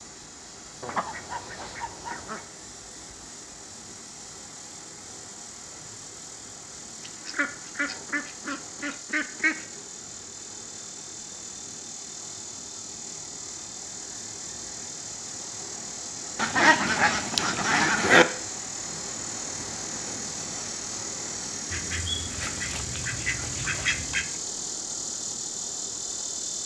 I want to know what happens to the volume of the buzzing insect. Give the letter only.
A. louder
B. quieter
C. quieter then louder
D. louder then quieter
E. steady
A.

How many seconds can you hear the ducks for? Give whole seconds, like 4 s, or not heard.
9 s.